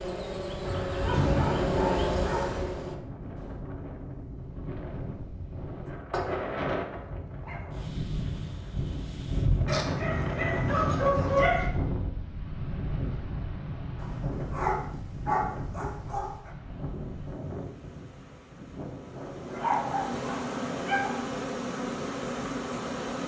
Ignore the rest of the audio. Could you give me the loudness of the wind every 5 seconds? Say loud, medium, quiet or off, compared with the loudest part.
medium, loud, loud, medium, medium.